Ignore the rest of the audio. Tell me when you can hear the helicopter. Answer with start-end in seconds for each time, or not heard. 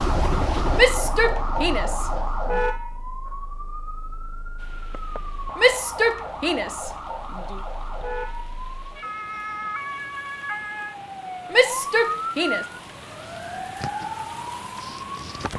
0.0-2.6.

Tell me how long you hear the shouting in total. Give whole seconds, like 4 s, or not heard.
5 s.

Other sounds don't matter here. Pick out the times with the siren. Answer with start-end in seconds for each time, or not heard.
0.0-15.5.